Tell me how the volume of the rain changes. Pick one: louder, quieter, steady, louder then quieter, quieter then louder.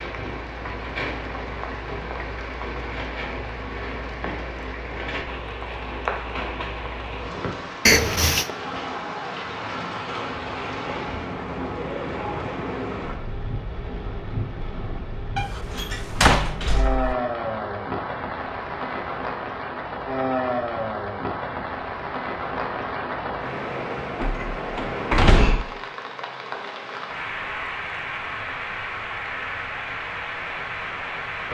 steady.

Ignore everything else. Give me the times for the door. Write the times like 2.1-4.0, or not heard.
7.8-8.5, 15.3-17.1, 24.2-25.7.